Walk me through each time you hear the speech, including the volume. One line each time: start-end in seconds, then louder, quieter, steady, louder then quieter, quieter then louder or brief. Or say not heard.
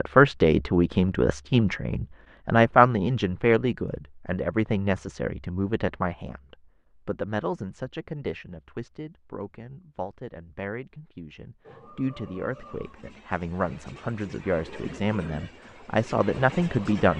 0.0-17.1 quieter then louder.